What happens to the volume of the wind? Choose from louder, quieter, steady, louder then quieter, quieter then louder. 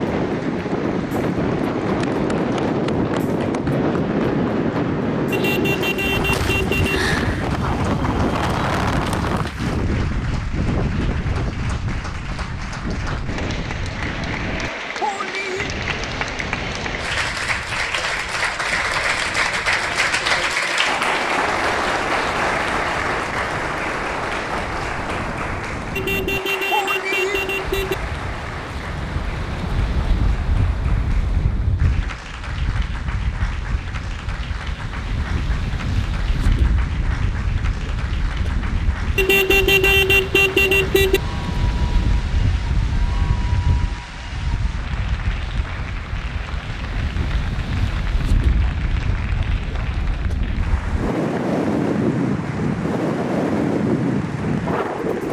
quieter then louder.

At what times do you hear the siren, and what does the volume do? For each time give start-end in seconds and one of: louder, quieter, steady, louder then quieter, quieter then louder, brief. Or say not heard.
not heard.